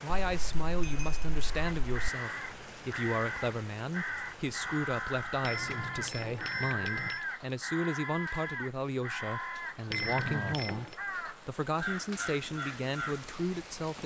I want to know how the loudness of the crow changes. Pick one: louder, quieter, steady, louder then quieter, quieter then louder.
steady.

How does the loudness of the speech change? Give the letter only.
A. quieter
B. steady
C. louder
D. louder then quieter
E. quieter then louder
B.